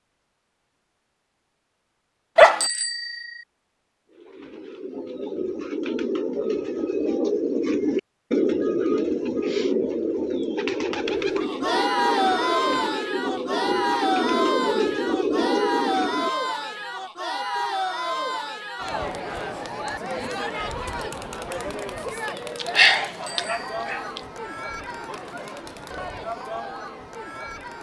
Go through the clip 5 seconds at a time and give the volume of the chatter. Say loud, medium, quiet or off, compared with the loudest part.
off, off, loud, loud, medium, medium.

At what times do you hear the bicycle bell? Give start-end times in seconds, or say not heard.
2.6-3.5, 23.2-23.9.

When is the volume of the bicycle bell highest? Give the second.
3 s.